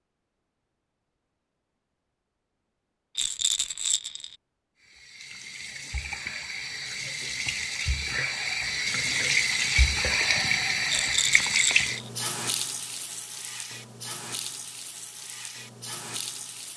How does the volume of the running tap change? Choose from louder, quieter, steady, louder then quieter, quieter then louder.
louder then quieter.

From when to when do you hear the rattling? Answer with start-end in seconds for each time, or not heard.
3.1-4.3, 10.8-12.1.